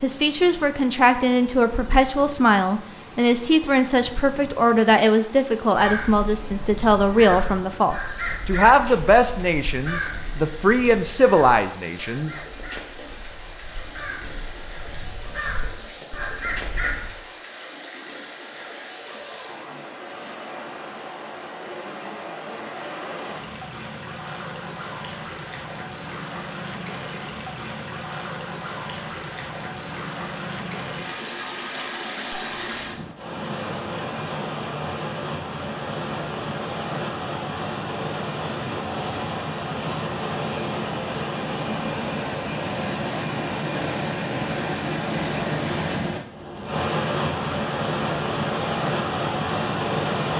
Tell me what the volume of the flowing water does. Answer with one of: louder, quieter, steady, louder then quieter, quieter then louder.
louder.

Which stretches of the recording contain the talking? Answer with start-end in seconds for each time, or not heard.
0.0-12.3.